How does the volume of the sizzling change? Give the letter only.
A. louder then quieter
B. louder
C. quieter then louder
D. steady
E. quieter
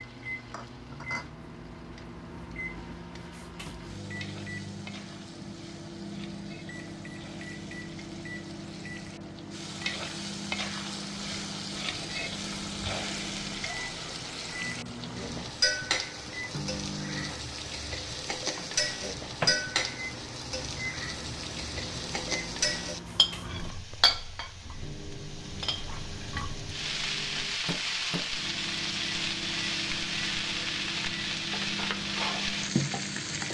B.